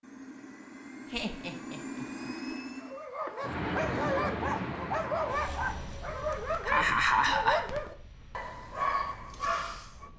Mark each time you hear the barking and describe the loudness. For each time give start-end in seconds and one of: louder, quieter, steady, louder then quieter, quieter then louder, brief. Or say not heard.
2.8-10.1 steady.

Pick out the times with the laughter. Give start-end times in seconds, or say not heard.
1.1-2.3, 6.3-7.8.